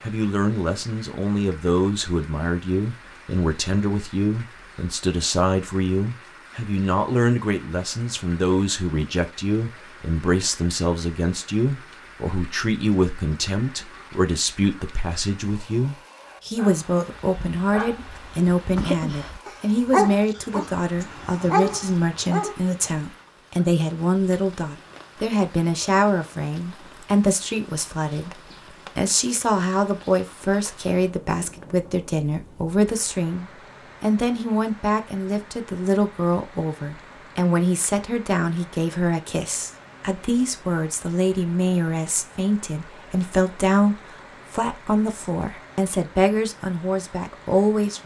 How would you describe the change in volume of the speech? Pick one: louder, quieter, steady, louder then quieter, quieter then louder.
steady.